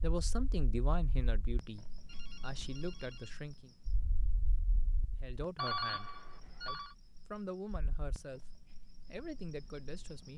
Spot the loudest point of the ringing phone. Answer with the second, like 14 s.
6 s.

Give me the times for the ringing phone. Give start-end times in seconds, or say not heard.
2.0-3.4, 5.5-7.0.